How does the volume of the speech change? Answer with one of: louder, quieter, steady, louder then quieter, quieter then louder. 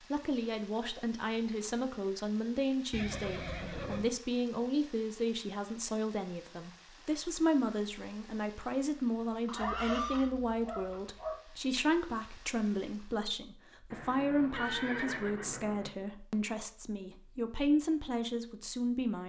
steady.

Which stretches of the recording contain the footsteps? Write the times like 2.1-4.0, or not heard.
not heard.